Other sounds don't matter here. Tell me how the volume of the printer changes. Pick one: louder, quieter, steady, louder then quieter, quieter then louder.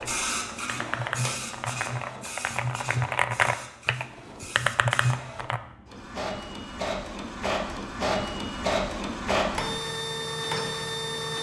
quieter then louder.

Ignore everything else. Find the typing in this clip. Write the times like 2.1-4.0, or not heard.
0.0-5.6.